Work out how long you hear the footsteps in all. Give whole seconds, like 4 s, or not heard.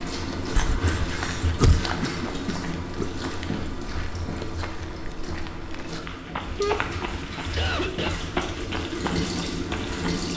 10 s.